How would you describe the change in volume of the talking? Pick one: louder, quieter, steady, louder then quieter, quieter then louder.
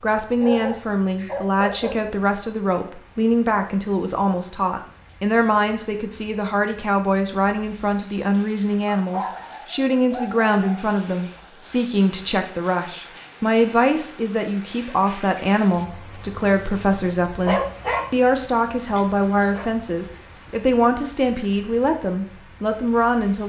steady.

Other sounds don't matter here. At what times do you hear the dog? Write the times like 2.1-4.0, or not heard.
0.4-1.9, 8.9-10.8, 17.4-18.1, 18.9-19.7.